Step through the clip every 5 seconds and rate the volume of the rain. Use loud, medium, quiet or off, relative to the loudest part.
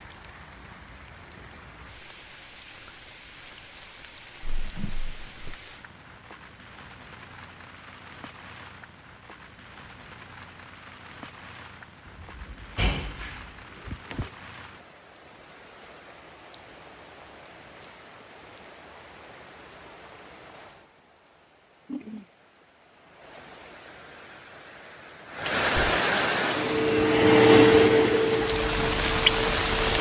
quiet, quiet, quiet, quiet, quiet, loud.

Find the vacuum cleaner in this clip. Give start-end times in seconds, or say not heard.
26.4-29.8.